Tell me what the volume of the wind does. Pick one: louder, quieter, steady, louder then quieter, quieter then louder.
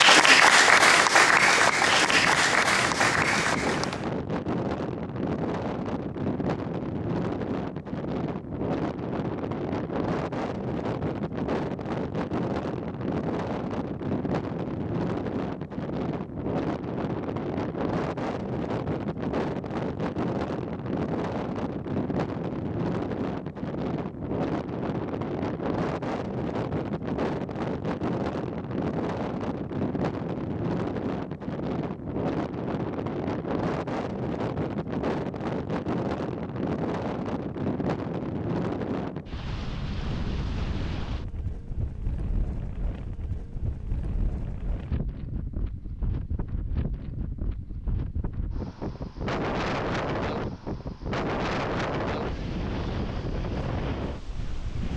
steady.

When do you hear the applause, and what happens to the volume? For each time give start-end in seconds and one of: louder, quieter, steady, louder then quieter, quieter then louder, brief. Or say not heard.
0.0-4.0 quieter.